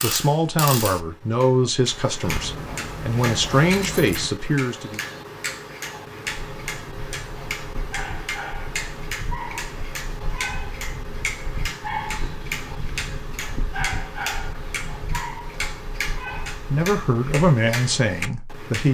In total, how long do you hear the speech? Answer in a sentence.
The speech can be heard for 7 seconds in total.